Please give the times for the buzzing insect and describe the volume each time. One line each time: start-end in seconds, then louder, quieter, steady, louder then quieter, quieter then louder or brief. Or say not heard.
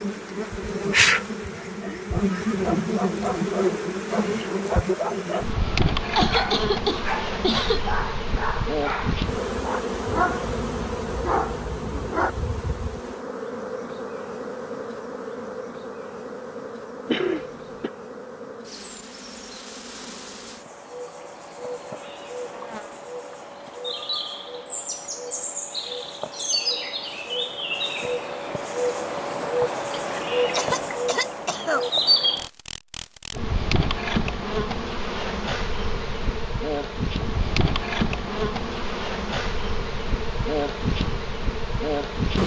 0.0-42.4 quieter then louder.